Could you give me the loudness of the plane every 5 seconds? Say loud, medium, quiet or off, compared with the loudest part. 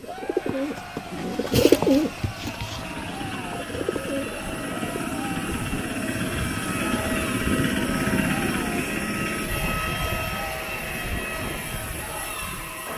medium, loud, medium.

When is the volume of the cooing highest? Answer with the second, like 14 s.
2 s.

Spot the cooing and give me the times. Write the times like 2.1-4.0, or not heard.
0.0-5.0.